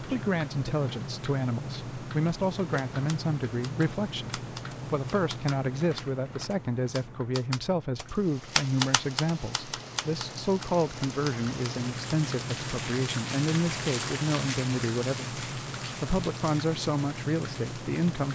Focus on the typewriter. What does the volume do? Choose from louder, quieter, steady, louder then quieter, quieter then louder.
louder then quieter.